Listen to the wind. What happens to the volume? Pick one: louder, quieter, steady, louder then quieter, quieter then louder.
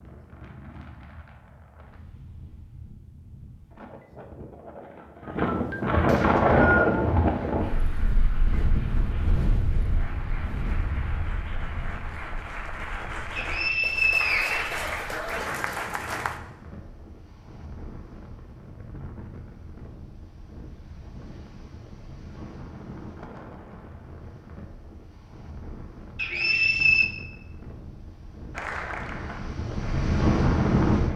quieter then louder.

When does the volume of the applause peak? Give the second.
15 s.